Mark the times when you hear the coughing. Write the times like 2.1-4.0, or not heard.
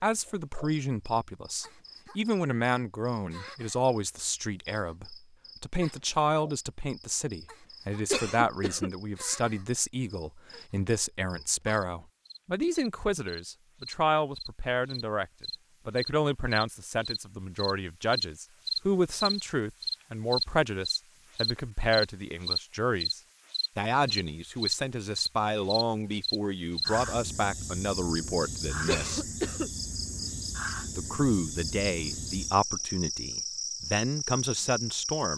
8.1-8.9, 28.9-29.7.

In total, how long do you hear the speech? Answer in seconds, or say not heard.
33 s.